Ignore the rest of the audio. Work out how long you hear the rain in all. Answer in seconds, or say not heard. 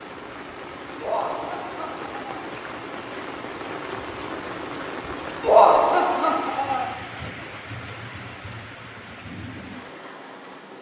11 s.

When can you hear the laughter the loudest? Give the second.
6 s.